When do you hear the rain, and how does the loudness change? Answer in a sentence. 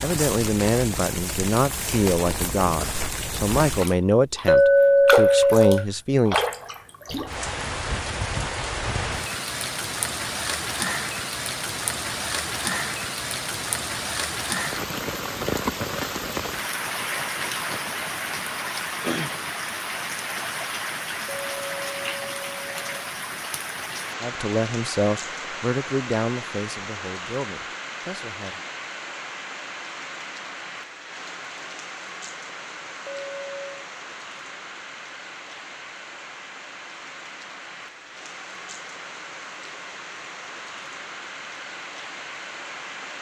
The rain can be heard from 0.0 to 43.1 s, getting quieter.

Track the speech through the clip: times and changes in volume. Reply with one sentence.
The speech can be heard from 0.0 to 6.5 s, at a steady volume; and from 24.2 to 28.6 s, getting quieter.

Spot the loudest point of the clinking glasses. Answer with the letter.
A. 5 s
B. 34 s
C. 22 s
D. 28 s
A.